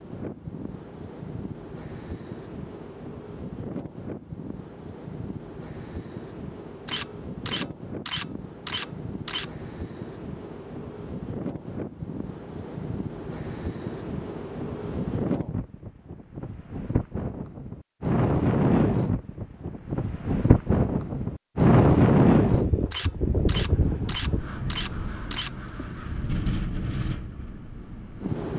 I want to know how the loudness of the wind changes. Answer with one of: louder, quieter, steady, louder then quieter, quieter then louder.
louder then quieter.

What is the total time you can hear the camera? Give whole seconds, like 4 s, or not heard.
5 s.